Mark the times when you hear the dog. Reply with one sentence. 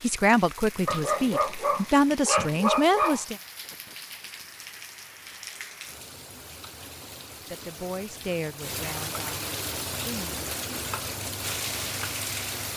The dog can be heard from 0.8 to 3.2 s.